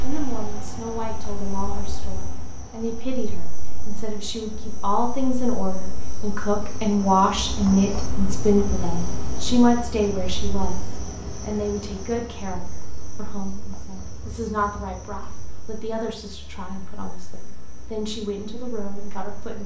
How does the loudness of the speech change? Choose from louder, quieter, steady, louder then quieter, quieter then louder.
louder then quieter.